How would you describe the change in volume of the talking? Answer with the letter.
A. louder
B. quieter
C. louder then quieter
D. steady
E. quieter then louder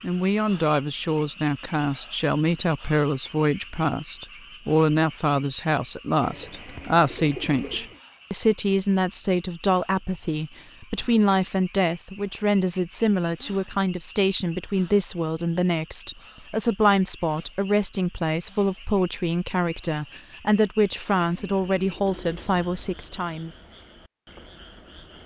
D.